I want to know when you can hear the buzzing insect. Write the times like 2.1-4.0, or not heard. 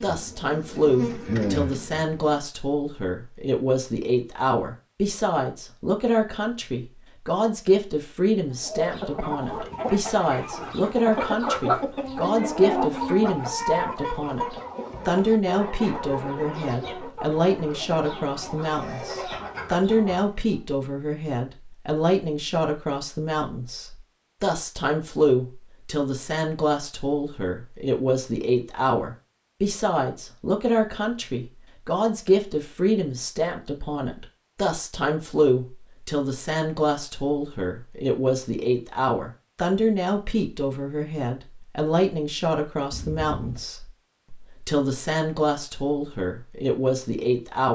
0.0-2.4.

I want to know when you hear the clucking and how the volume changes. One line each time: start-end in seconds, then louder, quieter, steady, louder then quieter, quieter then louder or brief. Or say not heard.
8.5-20.6 louder then quieter.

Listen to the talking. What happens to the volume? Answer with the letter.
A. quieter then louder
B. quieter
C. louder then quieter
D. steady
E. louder
D.